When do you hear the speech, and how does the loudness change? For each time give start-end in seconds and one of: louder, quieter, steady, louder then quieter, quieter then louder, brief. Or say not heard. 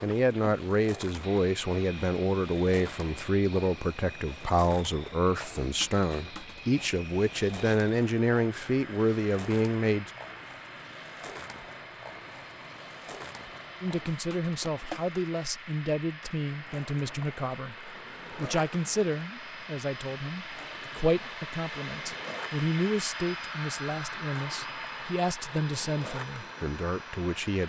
0.0-10.1 steady
13.8-27.6 steady.